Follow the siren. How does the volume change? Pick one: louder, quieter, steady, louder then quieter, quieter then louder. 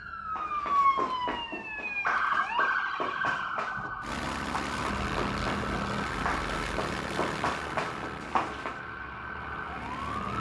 quieter.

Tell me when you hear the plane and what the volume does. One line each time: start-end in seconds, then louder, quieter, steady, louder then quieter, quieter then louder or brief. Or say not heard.
4.0-10.3 quieter.